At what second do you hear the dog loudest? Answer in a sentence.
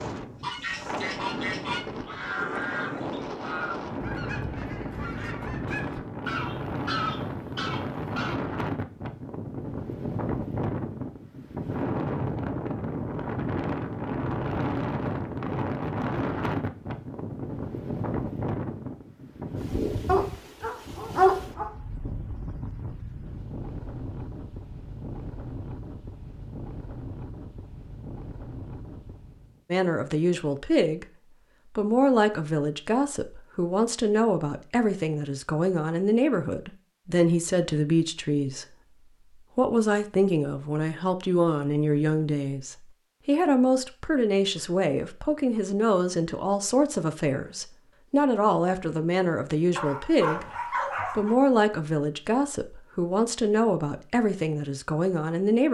The loudest moment of the dog is at 21 seconds.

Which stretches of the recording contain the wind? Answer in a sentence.
You can hear the wind from 0.0 to 29.6 s.